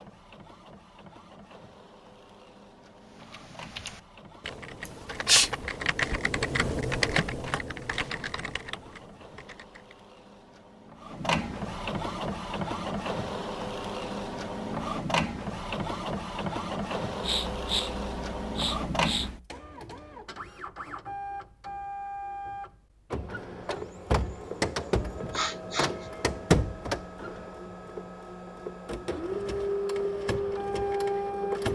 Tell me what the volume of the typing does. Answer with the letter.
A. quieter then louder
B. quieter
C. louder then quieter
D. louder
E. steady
C.